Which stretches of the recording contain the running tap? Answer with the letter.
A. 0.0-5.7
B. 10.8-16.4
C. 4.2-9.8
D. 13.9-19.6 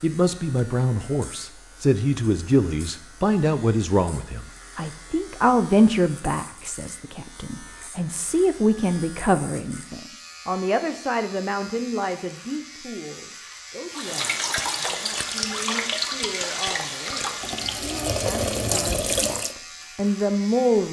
D.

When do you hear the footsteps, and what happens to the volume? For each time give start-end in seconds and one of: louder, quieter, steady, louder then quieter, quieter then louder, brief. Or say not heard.
not heard.